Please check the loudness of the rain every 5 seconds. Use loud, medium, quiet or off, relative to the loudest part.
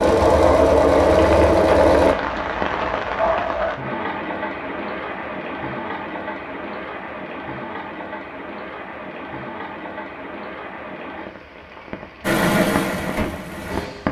loud, medium, medium.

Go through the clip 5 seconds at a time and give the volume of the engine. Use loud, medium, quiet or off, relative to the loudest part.
loud, off, medium.